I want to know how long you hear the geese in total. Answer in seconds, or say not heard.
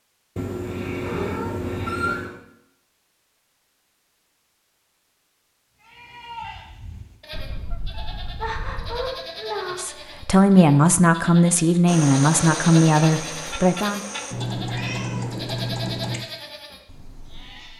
2 s.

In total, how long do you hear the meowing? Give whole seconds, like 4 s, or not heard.
6 s.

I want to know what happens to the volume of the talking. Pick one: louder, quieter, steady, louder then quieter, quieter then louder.
quieter.